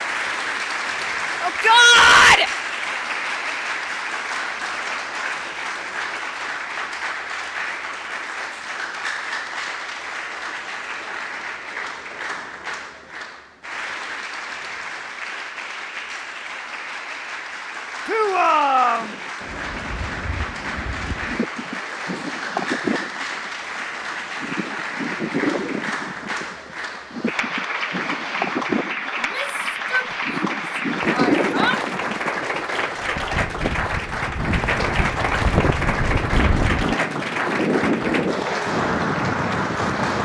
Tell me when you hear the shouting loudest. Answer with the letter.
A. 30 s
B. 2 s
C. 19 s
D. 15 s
B.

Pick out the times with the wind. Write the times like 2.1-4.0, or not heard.
18.9-40.1.